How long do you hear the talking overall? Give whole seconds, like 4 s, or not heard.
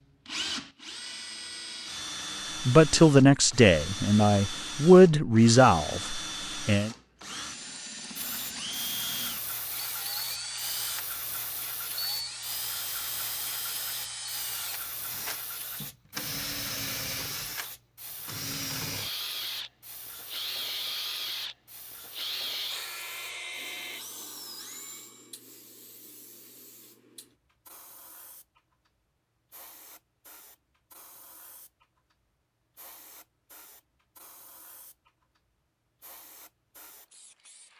4 s.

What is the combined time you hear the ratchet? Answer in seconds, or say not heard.
not heard.